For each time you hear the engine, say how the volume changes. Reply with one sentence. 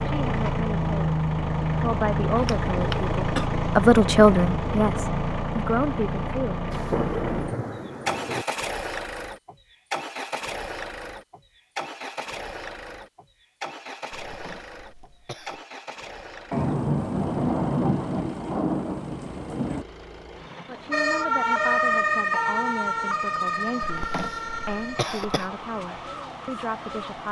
You can hear the engine from 0.0 to 27.2 s, getting quieter.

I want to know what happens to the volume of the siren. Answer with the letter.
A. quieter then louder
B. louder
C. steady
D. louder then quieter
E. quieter
E.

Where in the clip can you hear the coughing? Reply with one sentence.
You can hear the coughing from 2.4 to 3.5 s, from 14.2 to 15.7 s and from 23.8 to 25.5 s.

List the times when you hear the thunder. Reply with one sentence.
The thunder can be heard from 6.7 to 8.4 s and from 16.5 to 19.9 s.